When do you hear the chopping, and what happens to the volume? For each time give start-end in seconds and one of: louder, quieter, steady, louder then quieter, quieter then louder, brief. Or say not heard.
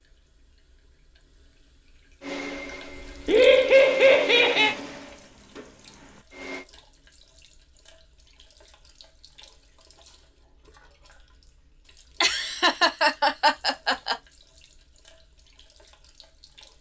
not heard.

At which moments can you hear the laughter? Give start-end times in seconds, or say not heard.
3.2-4.8, 12.2-14.2.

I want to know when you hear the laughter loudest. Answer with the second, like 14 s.
4 s.